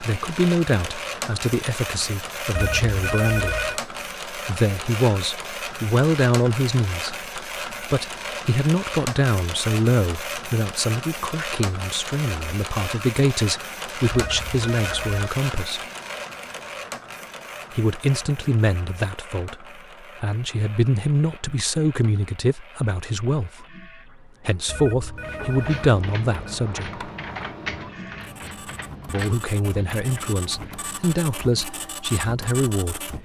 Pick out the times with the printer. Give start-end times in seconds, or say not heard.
0.0-33.2.